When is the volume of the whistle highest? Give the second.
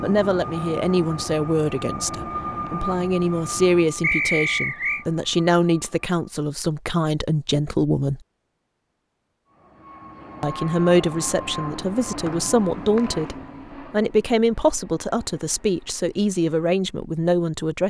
4 s.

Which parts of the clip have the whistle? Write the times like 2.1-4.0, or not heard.
4.0-5.0, 12.2-13.3.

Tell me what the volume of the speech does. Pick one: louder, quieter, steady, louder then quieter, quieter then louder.
steady.